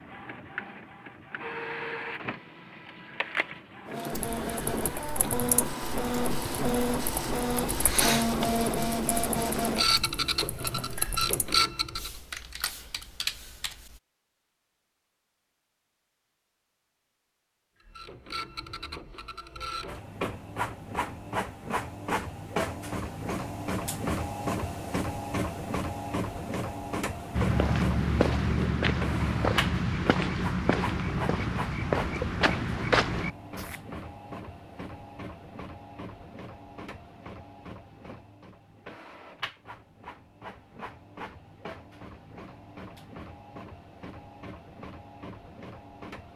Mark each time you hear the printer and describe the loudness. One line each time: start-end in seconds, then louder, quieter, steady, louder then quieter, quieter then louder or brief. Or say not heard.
0.0-12.1 louder
17.8-46.3 quieter.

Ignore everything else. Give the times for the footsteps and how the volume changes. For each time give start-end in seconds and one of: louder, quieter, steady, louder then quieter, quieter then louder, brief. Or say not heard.
27.3-33.8 steady.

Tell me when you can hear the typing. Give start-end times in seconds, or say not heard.
4.1-14.0.